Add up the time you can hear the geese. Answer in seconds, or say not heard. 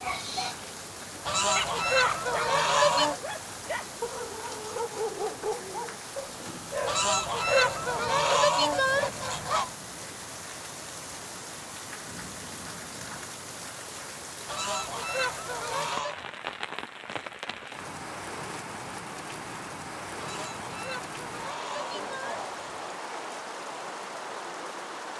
9 s.